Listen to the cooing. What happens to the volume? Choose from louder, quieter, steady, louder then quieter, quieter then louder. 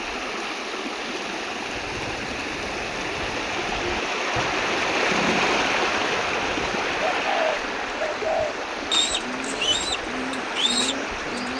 louder.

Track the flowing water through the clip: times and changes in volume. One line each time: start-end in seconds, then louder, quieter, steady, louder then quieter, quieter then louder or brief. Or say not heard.
0.0-11.5 louder then quieter.